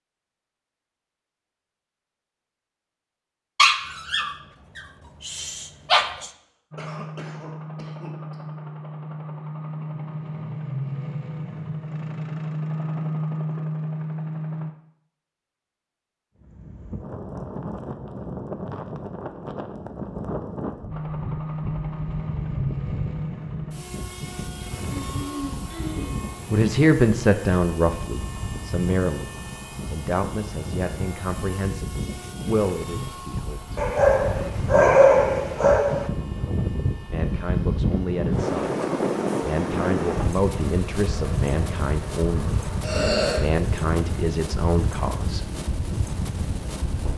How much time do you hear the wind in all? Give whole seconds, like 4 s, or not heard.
31 s.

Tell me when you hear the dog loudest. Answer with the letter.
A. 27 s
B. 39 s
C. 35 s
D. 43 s
C.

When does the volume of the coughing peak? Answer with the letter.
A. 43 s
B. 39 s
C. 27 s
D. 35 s
A.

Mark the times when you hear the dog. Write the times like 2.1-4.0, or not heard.
3.5-6.3, 33.8-36.1.